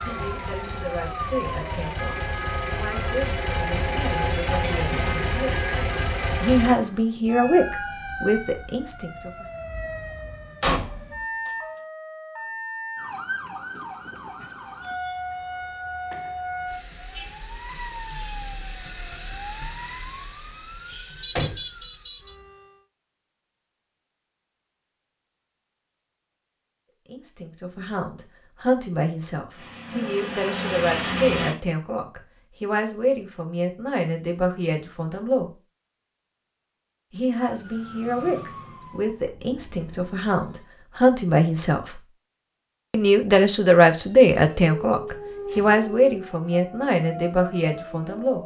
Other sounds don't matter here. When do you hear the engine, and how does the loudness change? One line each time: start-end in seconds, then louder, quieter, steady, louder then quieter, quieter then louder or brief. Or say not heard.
0.0-6.8 louder
29.5-31.6 brief.